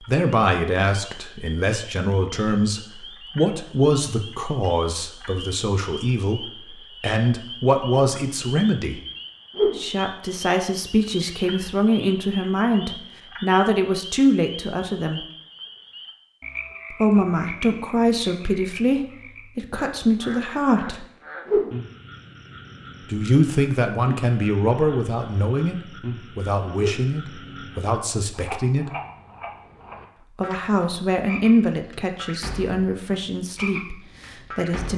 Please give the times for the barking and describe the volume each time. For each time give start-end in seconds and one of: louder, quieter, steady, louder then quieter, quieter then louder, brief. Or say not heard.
not heard.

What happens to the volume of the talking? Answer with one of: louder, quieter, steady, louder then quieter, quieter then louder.
steady.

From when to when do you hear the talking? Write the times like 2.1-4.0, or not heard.
0.0-9.0, 9.8-15.2, 16.9-21.1, 23.1-28.9, 30.4-34.9.